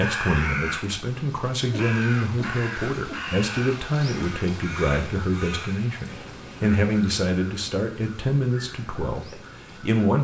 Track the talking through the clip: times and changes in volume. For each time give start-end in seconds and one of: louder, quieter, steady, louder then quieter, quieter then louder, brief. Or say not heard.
0.0-10.1 steady.